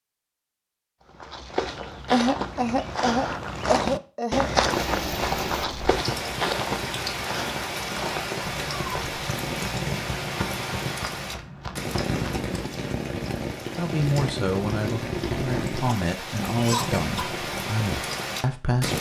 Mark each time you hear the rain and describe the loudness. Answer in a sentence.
You can hear the rain from 4.7 to 18.9 s, at a steady volume.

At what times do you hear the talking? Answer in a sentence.
You can hear the talking from 13.8 to 18.9 s.